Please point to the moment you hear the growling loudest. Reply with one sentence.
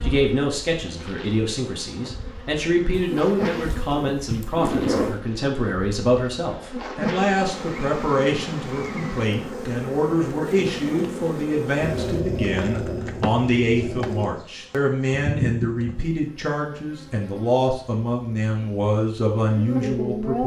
The loudest moment of the growling is at 5 seconds.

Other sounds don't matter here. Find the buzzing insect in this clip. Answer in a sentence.
You can hear the buzzing insect from 0.0 to 20.4 s.